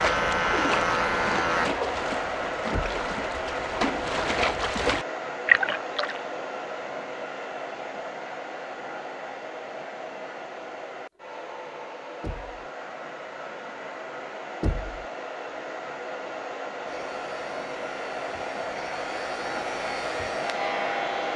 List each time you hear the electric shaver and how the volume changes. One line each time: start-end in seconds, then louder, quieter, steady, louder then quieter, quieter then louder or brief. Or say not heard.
0.0-1.7 brief
16.9-21.3 louder.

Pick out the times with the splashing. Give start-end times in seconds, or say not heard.
0.0-6.2.